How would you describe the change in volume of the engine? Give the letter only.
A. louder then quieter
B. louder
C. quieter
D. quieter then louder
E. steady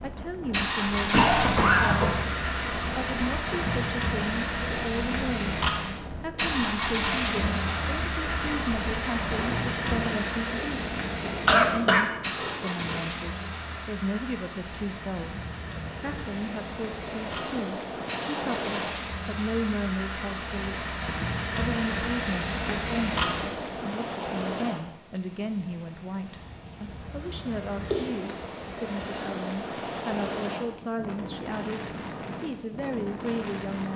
D.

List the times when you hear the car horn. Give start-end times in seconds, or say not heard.
not heard.